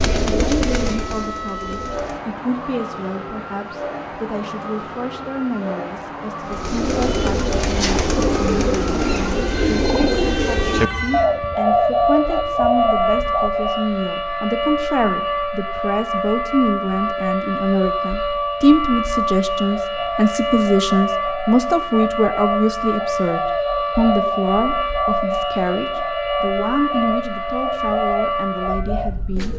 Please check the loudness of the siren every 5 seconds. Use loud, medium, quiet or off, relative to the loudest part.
medium, medium, loud, loud, loud, loud.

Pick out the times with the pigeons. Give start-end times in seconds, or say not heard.
0.0-2.2, 6.5-13.9, 19.6-29.5.